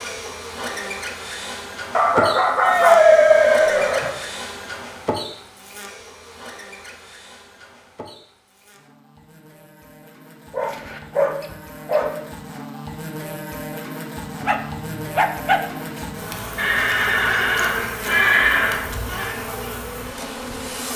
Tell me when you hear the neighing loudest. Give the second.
3 s.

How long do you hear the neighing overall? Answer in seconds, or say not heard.
4 s.